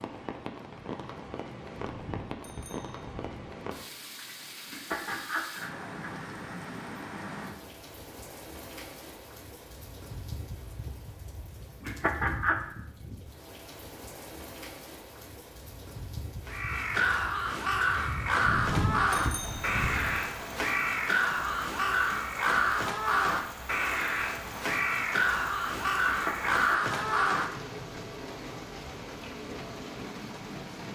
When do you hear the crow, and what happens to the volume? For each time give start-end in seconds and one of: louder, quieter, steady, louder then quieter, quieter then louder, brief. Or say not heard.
16.4-27.5 steady.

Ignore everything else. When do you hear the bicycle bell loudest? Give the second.
19 s.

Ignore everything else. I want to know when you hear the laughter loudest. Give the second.
12 s.